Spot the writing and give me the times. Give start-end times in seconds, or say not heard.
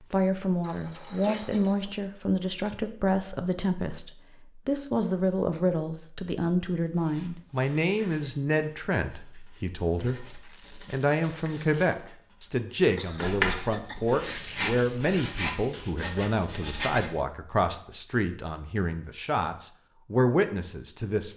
6.8-17.1.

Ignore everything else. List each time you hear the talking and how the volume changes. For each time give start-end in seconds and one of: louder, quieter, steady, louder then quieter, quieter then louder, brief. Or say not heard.
0.1-21.3 steady.